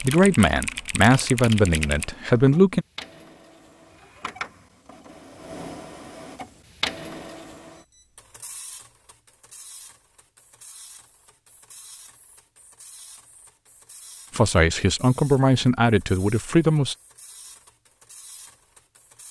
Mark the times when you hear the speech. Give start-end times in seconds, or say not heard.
0.0-2.9, 14.3-16.9.